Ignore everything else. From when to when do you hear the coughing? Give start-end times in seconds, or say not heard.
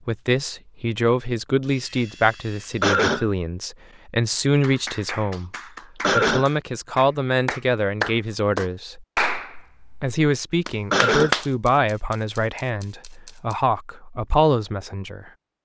2.8-3.2, 6.0-6.5, 10.9-11.3.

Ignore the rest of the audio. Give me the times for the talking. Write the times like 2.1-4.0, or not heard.
0.1-5.5, 6.1-9.1, 10.0-15.3.